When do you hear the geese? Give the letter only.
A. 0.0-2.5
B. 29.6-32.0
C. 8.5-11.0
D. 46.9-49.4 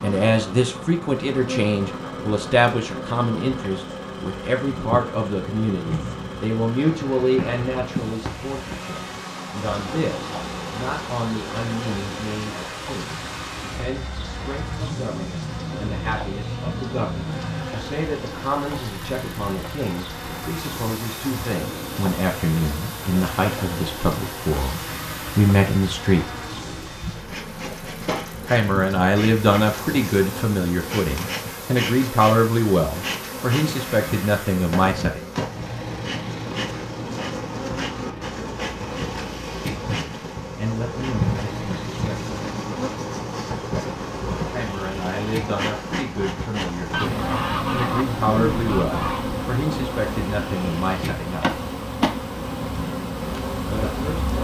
D.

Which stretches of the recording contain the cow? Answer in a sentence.
You can't hear the cow here.